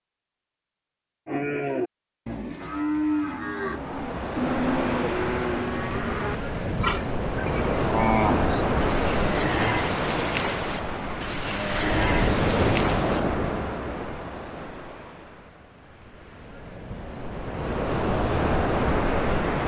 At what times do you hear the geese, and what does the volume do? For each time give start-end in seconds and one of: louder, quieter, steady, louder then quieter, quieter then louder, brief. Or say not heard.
not heard.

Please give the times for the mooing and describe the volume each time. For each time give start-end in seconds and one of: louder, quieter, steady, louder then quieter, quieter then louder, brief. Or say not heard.
1.2-13.2 steady.